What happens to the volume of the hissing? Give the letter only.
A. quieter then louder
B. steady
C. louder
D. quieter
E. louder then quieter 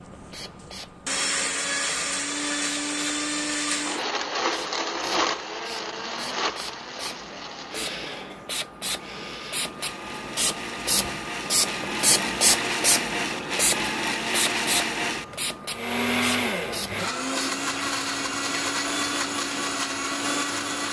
E.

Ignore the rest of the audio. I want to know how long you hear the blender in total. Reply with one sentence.
You can hear the blender for 21 seconds altogether.